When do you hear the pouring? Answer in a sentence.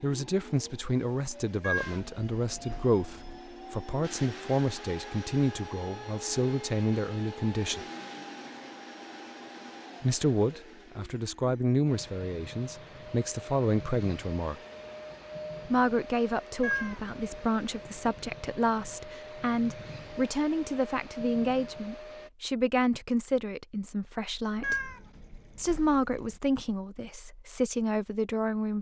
The pouring can't be heard in this clip.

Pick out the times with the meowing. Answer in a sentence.
You can hear the meowing from 1.6 to 3.4 s, from 16.6 to 17.4 s and from 24.6 to 26.4 s.